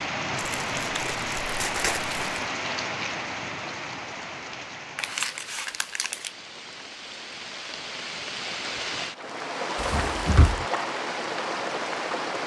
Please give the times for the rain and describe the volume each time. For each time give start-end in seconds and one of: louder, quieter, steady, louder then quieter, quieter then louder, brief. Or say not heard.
0.0-12.4 quieter then louder.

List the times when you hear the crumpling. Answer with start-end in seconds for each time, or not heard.
0.6-2.4, 5.0-6.3, 9.8-10.7.